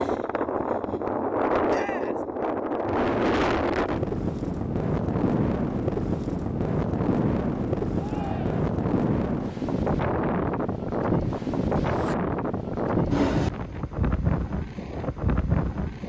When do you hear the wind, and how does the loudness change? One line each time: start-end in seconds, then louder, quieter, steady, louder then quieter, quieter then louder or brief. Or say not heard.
0.0-16.0 steady.